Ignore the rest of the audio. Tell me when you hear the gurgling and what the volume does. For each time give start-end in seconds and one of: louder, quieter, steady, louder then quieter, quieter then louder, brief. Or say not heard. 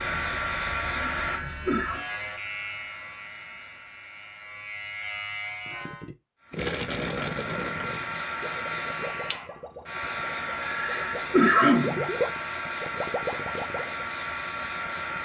5.7-14.1 quieter then louder.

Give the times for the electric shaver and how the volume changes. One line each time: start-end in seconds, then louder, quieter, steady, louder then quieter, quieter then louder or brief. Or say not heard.
0.0-6.1 quieter then louder.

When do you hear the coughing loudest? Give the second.
12 s.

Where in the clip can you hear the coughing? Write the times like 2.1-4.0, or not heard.
1.1-2.0, 10.6-12.1.